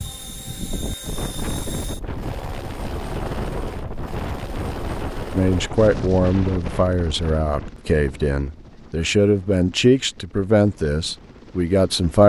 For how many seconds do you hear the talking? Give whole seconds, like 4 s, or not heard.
7 s.